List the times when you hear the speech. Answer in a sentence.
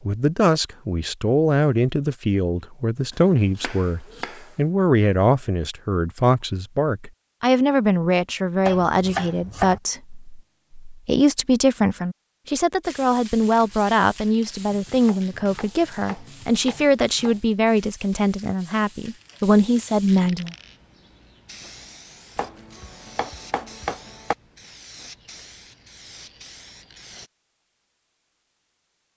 The speech can be heard from 0.1 to 20.6 s.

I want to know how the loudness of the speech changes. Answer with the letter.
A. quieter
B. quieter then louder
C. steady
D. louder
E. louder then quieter
C.